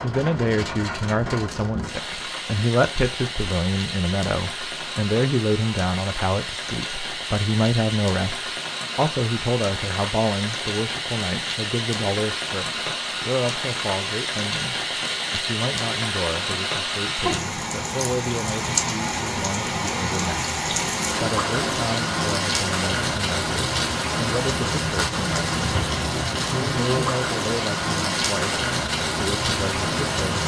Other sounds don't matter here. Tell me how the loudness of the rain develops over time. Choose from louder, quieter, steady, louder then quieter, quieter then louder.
louder.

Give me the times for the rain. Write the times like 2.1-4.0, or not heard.
0.0-30.4.